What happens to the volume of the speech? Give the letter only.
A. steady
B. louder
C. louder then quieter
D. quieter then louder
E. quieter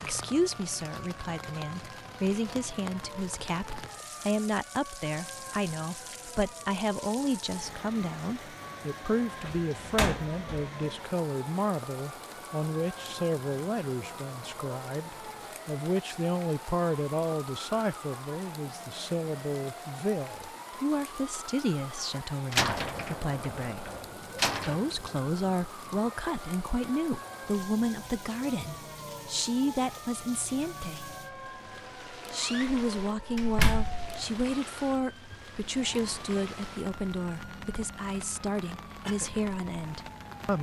A.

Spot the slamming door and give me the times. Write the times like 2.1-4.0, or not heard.
9.4-10.7, 22.5-24.9, 32.4-34.2.